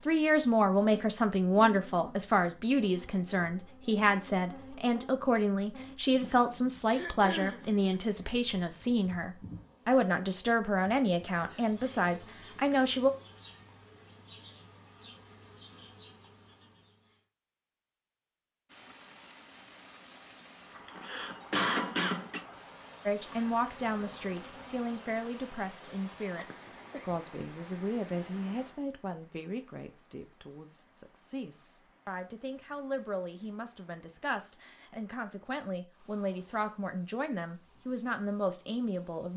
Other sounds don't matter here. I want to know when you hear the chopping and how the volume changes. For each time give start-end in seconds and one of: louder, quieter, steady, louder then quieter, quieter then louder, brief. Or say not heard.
not heard.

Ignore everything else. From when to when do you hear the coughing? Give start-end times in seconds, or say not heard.
6.9-7.7, 20.8-22.4, 26.4-27.1.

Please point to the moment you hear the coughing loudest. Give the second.
22 s.